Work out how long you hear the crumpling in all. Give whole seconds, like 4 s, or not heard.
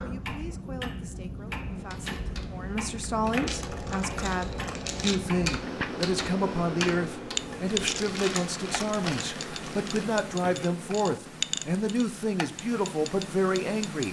4 s.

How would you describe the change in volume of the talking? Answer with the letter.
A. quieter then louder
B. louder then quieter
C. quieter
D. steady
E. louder
E.